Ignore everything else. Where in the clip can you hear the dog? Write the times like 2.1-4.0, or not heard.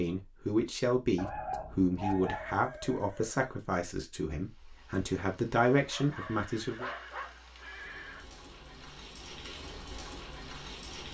1.1-2.6, 5.7-7.3.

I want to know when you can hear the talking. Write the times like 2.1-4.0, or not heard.
0.0-6.9.